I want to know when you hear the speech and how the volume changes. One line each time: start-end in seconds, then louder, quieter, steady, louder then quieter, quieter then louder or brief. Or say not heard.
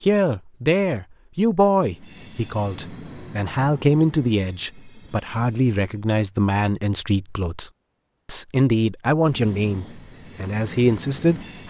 0.0-11.6 steady.